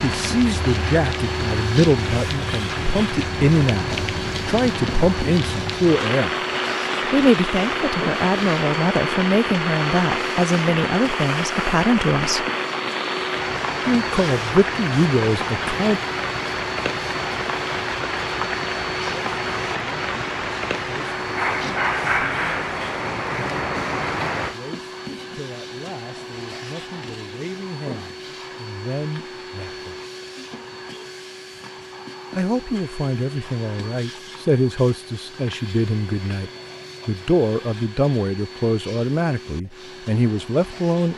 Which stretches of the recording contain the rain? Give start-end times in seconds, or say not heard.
0.0-24.6.